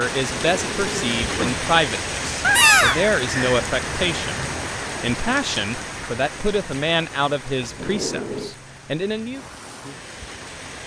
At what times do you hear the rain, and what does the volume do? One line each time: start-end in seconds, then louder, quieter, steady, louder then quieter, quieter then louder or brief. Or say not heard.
0.0-10.8 quieter.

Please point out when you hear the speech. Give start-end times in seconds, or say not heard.
0.0-9.4.